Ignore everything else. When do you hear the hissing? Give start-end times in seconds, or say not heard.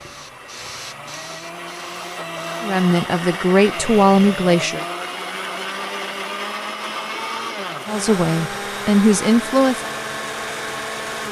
0.0-2.6.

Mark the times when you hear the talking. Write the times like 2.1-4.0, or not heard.
2.6-4.8, 7.8-9.8.